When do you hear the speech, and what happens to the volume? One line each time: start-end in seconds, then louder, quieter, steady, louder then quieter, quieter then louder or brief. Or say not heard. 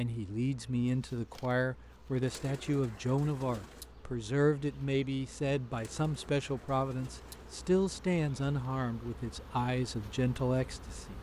0.0-11.1 steady.